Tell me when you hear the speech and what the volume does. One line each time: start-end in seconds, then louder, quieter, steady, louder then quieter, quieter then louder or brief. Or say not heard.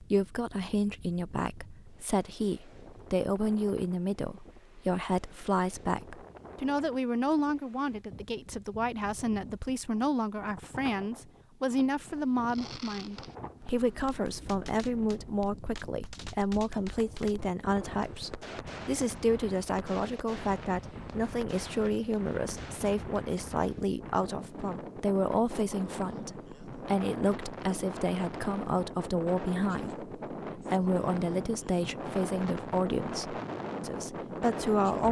0.0-35.0 steady.